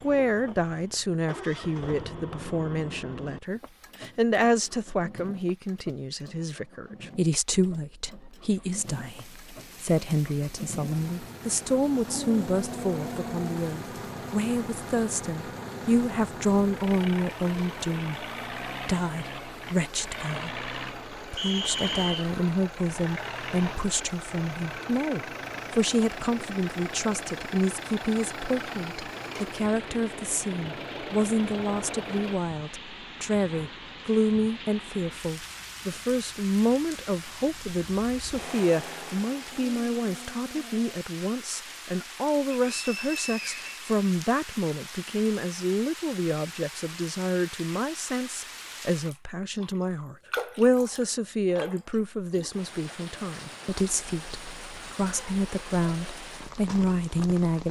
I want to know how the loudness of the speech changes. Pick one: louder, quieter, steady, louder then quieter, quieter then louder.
steady.